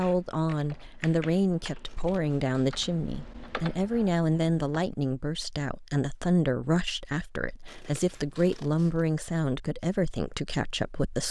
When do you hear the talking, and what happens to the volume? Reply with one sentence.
You can hear the talking from 0.0 to 11.2 s, at a steady volume.